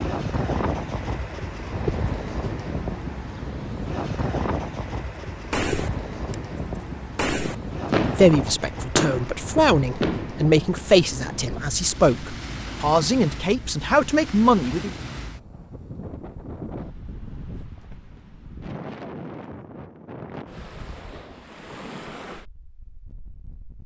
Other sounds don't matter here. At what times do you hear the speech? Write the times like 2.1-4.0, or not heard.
8.0-14.9.